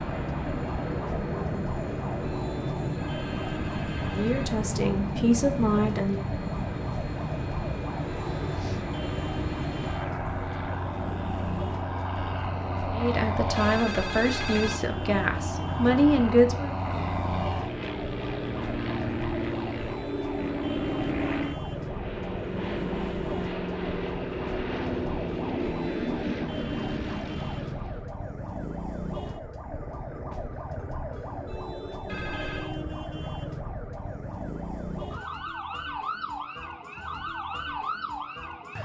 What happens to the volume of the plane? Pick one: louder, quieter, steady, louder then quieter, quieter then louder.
steady.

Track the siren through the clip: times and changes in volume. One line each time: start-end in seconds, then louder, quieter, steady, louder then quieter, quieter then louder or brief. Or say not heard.
0.0-38.8 steady.